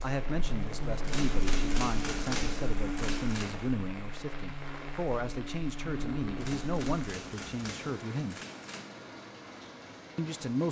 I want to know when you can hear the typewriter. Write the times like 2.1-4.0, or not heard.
1.1-3.5, 6.3-8.9.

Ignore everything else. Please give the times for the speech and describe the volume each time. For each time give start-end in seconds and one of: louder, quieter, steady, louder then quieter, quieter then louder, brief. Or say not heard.
0.0-8.4 steady
10.2-10.6 brief.